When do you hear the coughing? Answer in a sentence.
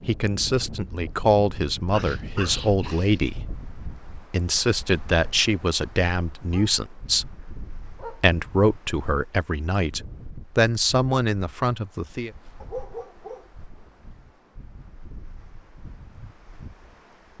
You can't hear the coughing here.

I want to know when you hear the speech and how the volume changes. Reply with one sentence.
The speech can be heard from 0.1 to 12.3 s, at a steady volume.